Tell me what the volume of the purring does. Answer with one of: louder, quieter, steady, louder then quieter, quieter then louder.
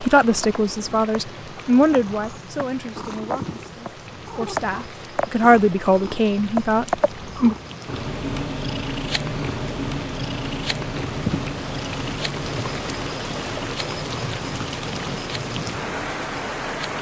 louder then quieter.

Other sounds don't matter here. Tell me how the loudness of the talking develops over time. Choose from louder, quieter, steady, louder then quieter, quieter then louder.
quieter then louder.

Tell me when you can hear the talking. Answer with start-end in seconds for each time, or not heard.
0.0-7.5.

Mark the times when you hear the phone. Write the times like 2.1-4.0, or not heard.
not heard.